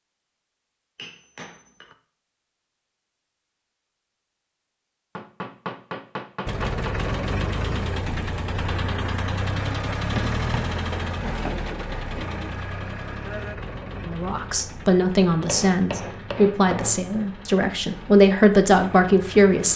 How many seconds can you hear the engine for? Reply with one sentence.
You can hear the engine for 13 seconds altogether.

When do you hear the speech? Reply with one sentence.
You can hear the speech from 14.1 to 19.7 s.